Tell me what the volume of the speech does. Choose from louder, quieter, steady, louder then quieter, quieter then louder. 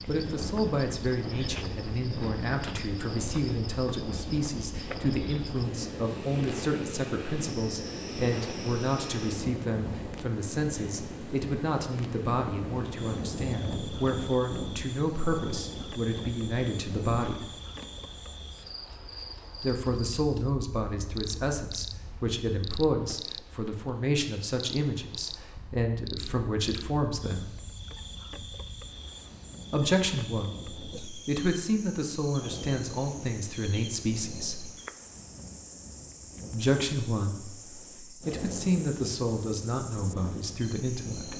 steady.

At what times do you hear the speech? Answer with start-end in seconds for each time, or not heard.
0.1-17.4, 19.6-27.5, 29.7-34.7, 36.5-41.3.